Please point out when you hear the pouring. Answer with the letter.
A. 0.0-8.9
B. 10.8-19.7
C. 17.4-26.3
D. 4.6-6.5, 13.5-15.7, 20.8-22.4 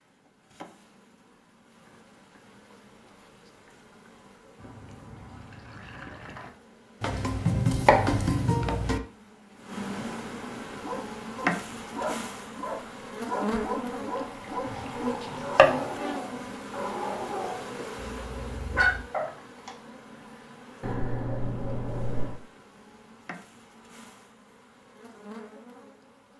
D.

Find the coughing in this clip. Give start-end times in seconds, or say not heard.
not heard.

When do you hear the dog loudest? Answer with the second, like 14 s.
19 s.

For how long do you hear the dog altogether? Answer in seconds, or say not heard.
9 s.